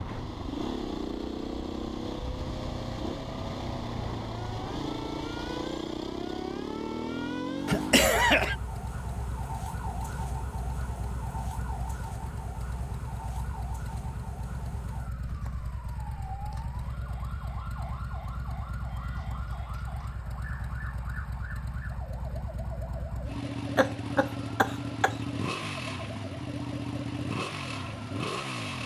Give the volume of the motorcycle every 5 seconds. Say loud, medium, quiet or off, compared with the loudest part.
loud, loud, medium, medium, loud, loud.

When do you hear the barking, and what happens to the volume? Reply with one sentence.
The barking can't be heard in this clip.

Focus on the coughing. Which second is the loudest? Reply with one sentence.
The volume of the coughing peaks at 8 seconds.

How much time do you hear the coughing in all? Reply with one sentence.
You can hear the coughing for 2 seconds altogether.